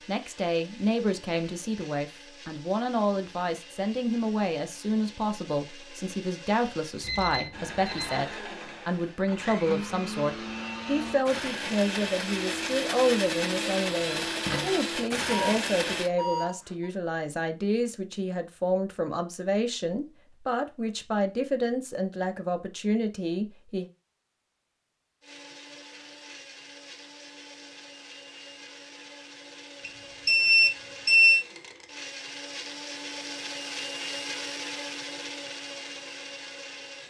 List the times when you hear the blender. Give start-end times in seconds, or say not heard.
0.0-16.1, 25.2-37.0.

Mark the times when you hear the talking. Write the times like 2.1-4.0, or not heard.
0.1-23.9.